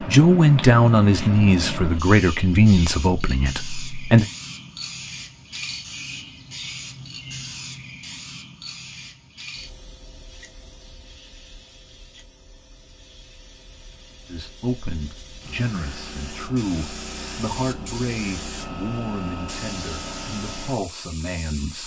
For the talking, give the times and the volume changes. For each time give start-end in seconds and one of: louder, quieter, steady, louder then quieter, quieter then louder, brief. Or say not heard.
0.0-4.2 quieter
14.2-21.8 steady.